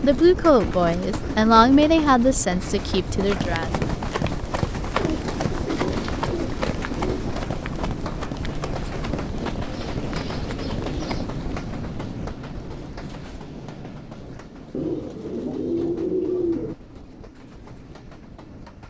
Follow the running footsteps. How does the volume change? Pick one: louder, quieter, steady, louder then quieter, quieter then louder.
quieter.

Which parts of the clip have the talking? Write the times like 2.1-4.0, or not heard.
0.0-3.7.